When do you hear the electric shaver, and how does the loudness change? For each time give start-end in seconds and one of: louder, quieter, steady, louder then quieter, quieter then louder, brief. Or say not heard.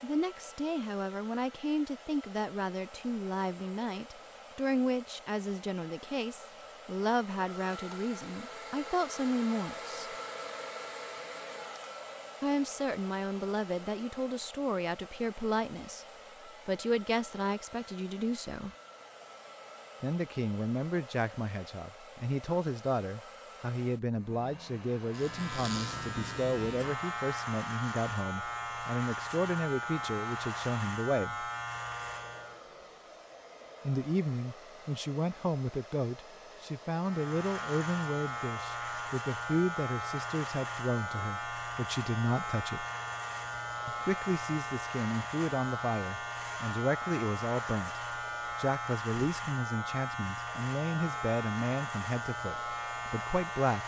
25.0-32.6 steady
37.0-53.8 steady.